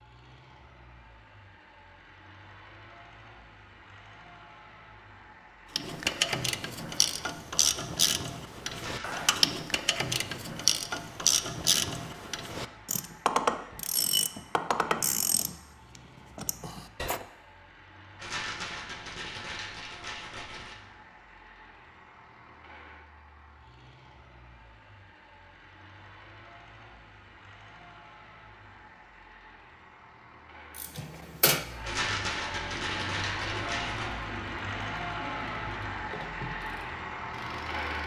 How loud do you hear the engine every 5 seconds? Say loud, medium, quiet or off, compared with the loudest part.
quiet, quiet, quiet, quiet, quiet, quiet, loud, loud.